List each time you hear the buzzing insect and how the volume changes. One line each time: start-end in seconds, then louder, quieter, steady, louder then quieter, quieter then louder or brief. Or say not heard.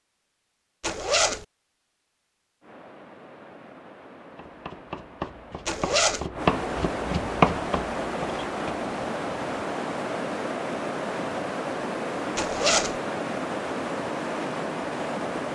not heard.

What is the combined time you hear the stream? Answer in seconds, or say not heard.
13 s.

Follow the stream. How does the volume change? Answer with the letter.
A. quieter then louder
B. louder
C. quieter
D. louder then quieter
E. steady
B.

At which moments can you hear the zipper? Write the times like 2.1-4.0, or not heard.
0.8-1.4, 5.7-6.2, 12.3-13.0.